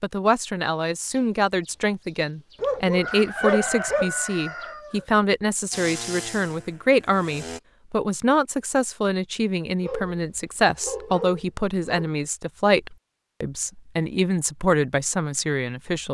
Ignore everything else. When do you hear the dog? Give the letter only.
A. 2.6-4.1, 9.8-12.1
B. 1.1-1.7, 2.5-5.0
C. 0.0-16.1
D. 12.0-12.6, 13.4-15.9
A.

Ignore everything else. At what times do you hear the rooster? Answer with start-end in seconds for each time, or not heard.
1.1-1.7, 2.5-5.0.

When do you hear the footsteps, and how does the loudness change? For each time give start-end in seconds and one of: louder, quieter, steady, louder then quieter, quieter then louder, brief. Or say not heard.
not heard.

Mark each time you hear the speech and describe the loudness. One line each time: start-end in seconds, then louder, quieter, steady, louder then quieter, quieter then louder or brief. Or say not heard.
0.0-16.1 steady.